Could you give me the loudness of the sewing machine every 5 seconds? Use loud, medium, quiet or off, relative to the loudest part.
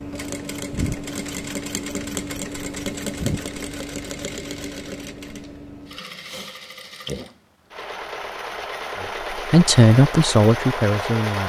loud, medium, loud.